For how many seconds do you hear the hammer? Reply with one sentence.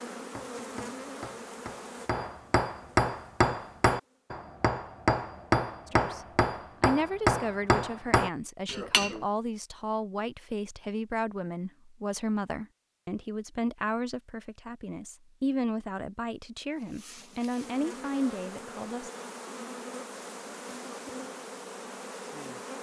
The hammer can be heard for 9 seconds in total.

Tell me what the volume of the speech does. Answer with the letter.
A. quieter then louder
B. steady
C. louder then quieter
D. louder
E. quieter
B.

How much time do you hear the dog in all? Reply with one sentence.
The dog can't be heard in this clip.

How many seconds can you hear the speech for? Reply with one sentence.
You can hear the speech for 13 seconds altogether.